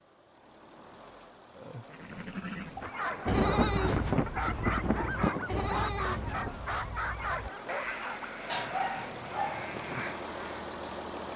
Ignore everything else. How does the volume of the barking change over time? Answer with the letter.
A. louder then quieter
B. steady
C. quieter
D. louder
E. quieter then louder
B.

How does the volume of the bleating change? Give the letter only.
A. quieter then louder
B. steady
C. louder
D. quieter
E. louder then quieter
D.